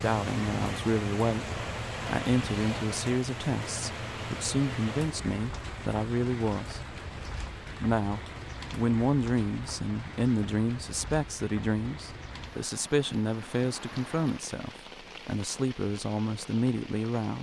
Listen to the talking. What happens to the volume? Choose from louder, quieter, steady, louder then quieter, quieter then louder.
steady.